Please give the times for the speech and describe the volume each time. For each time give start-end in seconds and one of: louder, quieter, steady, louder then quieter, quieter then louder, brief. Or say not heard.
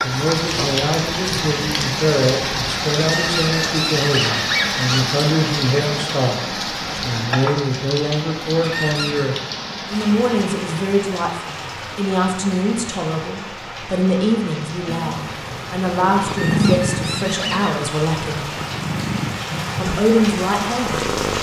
0.0-18.5 steady
19.8-21.1 brief.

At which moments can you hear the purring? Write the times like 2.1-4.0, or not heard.
14.8-21.3.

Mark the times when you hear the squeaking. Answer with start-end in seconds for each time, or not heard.
3.0-5.0, 8.6-9.3, 16.2-17.8.